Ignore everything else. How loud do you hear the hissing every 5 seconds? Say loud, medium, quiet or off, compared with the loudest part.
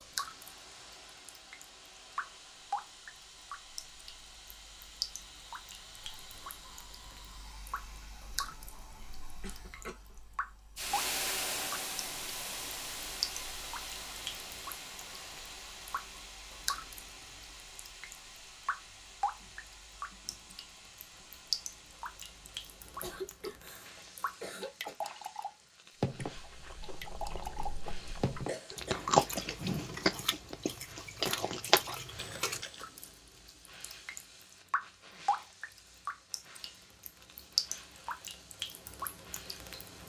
quiet, quiet, loud, medium, quiet, quiet, quiet, quiet.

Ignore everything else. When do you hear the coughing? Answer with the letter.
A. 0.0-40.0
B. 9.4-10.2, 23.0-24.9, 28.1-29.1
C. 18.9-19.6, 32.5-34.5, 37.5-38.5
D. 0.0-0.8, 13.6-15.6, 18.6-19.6
B.